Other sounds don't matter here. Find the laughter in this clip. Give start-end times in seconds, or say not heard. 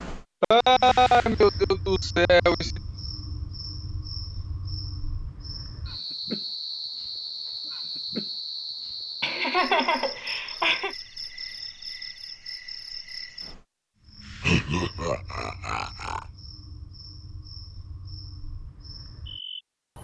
0.4-2.8, 9.2-10.9, 14.4-16.2.